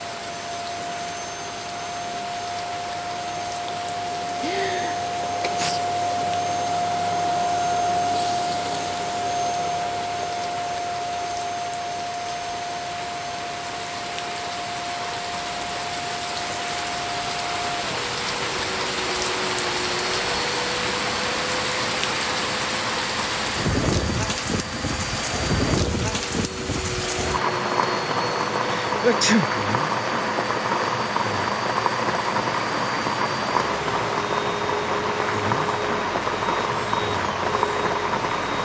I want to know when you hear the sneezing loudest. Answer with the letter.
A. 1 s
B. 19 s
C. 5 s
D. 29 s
D.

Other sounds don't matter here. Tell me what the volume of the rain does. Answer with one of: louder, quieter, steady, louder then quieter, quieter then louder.
louder.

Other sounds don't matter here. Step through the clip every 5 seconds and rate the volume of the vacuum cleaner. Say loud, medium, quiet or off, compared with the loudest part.
medium, loud, medium, medium, medium, medium, medium, medium.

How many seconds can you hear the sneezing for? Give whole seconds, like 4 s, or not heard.
3 s.